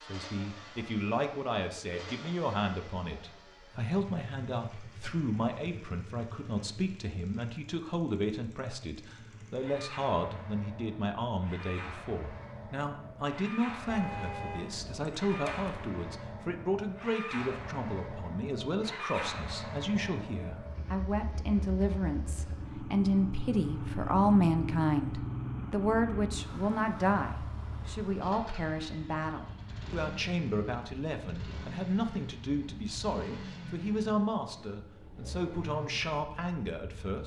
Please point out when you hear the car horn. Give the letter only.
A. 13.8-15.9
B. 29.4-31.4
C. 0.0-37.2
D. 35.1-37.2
A.